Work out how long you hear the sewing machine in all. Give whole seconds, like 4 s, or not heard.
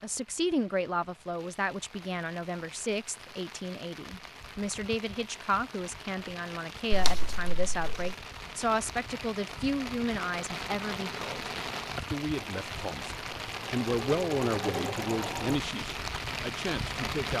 3 s.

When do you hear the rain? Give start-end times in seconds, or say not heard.
0.0-17.3.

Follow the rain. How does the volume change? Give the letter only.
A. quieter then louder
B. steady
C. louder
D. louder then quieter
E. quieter
C.